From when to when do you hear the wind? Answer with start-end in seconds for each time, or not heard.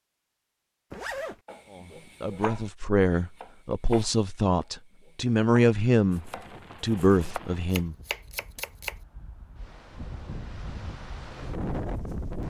6.0-12.4.